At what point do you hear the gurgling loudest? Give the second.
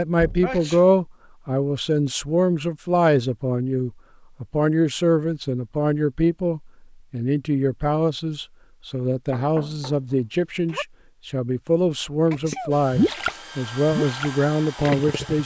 13 s.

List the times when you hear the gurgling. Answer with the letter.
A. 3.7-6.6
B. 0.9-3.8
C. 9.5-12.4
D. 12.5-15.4
D.